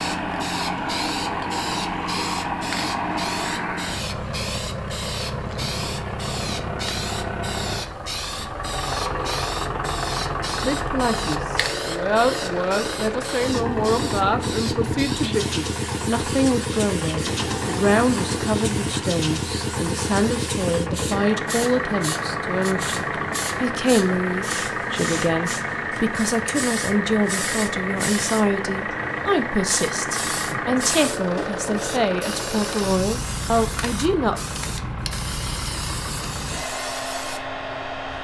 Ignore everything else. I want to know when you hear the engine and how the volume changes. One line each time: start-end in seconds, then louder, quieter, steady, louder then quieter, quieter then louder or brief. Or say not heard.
0.0-38.1 steady.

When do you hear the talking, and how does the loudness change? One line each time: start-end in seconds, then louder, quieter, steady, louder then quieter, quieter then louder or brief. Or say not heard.
10.6-34.4 steady.